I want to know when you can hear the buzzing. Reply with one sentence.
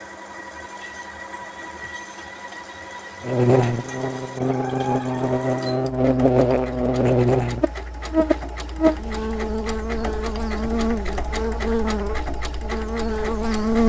You can hear the buzzing from 3.2 to 13.8 s.